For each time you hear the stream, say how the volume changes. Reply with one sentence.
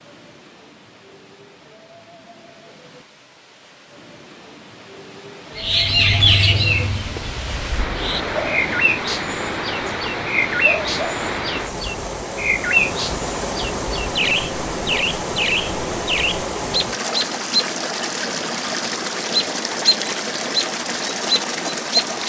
The stream can be heard from 0.0 to 22.2 s, getting louder.